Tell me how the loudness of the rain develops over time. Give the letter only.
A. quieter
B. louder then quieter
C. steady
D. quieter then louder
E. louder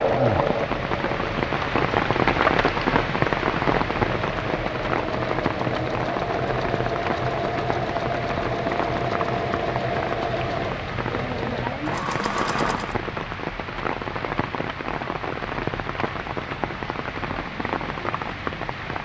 A.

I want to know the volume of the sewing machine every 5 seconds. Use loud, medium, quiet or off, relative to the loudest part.
loud, loud, loud, off.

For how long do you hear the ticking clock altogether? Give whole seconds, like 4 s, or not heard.
not heard.